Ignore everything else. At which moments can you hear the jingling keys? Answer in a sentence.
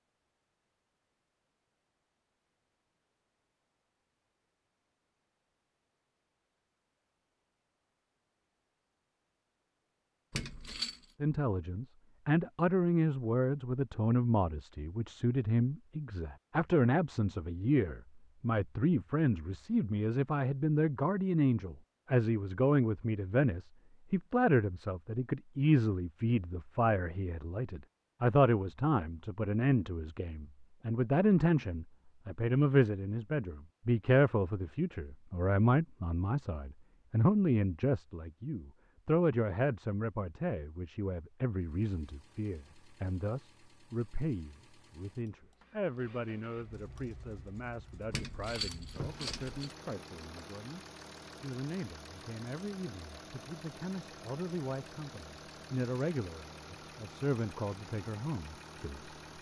The jingling keys can be heard from 10.3 to 11.1 s and from 48.1 to 49.8 s.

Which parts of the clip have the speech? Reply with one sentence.
You can hear the speech from 11.2 to 59.1 s.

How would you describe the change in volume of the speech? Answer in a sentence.
The loudness of the speech goes down.